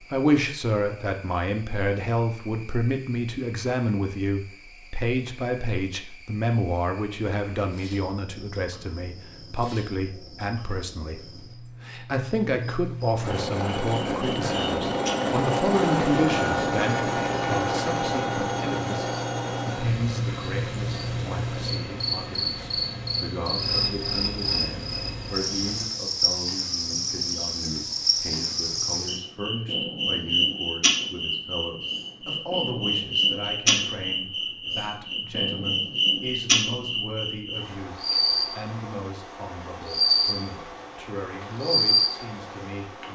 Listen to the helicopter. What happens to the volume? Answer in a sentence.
The volume of the helicopter goes down.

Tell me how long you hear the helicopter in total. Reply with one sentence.
You can hear the helicopter for 13 seconds altogether.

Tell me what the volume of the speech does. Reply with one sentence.
The loudness of the speech goes down.